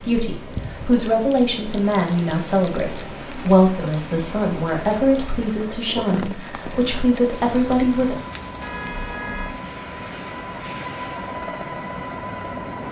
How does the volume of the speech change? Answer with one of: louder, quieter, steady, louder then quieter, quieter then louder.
steady.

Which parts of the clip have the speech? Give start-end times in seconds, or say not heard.
0.0-8.2.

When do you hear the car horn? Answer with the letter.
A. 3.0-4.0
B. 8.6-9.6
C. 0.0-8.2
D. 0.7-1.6
B.